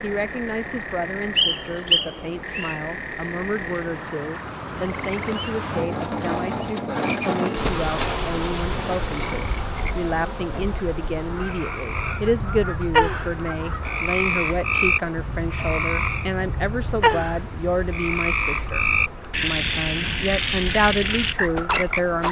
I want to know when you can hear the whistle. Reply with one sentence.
You can hear the whistle from 1.4 to 2.8 s.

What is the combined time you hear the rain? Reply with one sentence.
The rain can be heard for 22 seconds in total.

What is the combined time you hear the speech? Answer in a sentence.
The speech can be heard for 22 seconds in total.